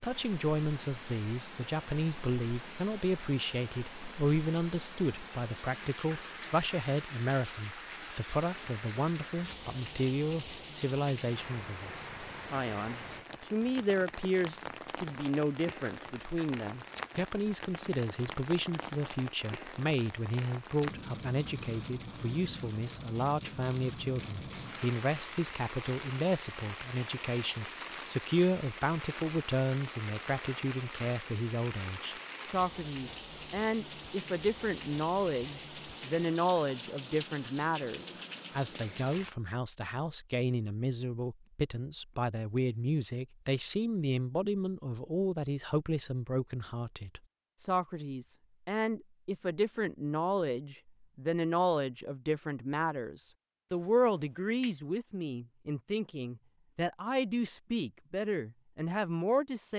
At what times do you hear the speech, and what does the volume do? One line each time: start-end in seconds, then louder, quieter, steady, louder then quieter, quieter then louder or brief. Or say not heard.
0.0-59.7 steady.